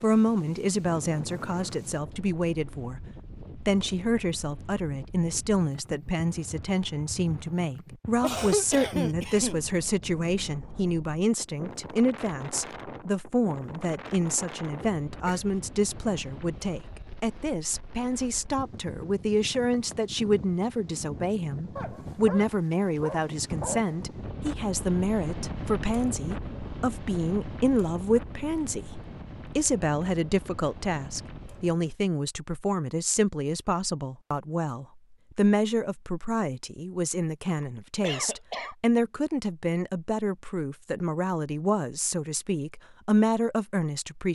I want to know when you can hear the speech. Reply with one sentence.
You can hear the speech from 0.0 to 3.0 s and from 3.6 to 44.2 s.